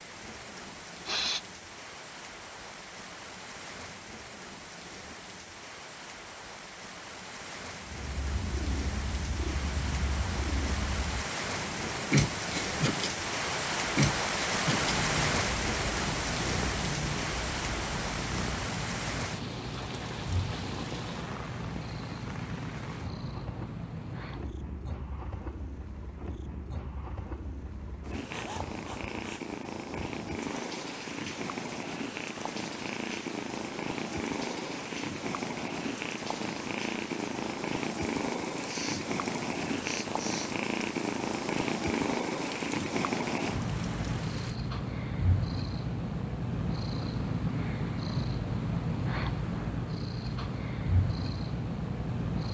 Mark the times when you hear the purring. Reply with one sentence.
You can hear the purring from 7.8 to 52.5 s.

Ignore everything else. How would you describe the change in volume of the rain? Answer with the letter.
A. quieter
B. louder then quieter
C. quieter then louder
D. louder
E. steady
B.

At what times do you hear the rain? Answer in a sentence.
You can hear the rain from 0.0 to 44.6 s.